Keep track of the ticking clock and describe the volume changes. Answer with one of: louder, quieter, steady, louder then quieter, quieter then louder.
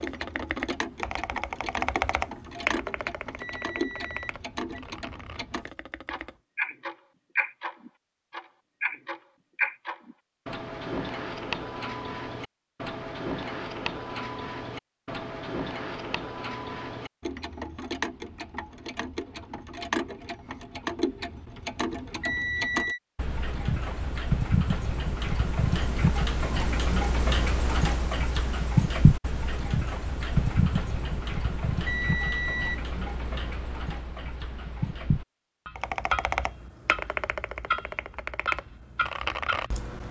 louder then quieter.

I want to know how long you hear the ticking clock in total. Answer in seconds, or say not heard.
40 s.